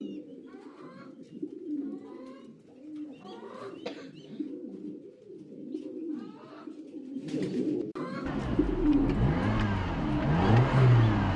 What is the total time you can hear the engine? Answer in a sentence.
You can hear the engine for 3 seconds altogether.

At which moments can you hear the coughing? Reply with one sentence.
You can hear the coughing from 3.9 to 4.5 s.